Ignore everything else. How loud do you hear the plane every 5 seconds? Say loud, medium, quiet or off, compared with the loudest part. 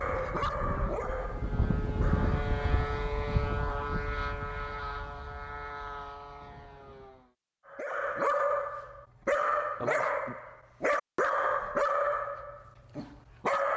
loud, medium, off.